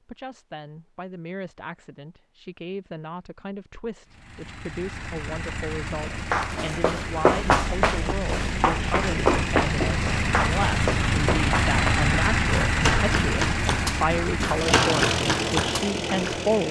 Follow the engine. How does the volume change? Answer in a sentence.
The loudness of the engine goes up.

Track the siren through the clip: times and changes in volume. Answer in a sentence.
The siren can't be heard in this clip.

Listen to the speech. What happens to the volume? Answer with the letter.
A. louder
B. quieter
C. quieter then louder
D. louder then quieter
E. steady
A.